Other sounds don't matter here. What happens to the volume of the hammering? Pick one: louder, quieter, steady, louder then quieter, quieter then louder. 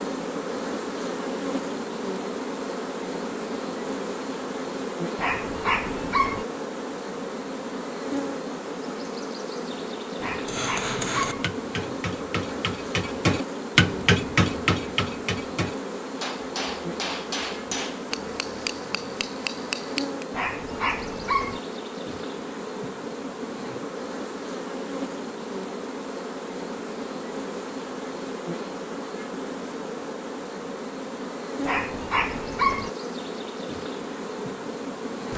louder then quieter.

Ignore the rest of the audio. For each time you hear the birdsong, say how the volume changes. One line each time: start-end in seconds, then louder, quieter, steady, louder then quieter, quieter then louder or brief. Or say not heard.
not heard.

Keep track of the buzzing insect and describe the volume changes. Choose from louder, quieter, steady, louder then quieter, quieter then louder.
steady.